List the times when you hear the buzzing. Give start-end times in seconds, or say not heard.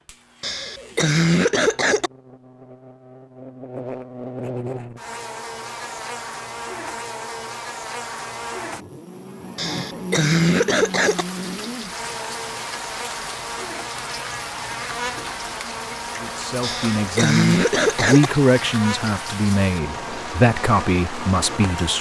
0.0-21.9.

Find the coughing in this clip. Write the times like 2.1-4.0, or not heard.
0.4-2.1, 9.6-11.2, 16.6-18.3.